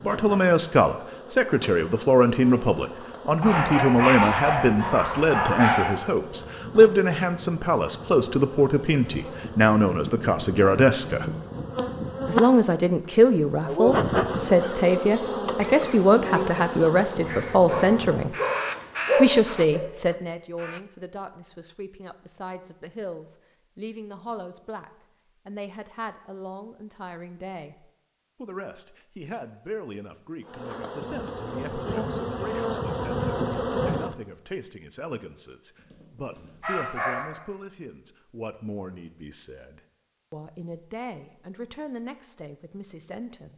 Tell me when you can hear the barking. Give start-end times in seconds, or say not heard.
3.4-6.0, 17.6-19.8, 35.9-37.4.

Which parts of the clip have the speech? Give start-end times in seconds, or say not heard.
0.1-11.2, 12.2-18.4, 19.1-43.5.